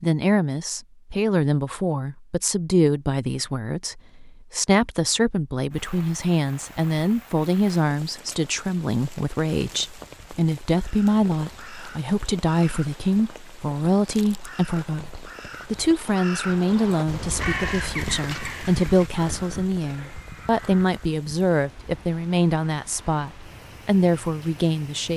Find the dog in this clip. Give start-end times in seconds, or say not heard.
not heard.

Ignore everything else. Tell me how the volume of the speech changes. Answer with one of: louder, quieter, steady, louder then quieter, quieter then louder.
steady.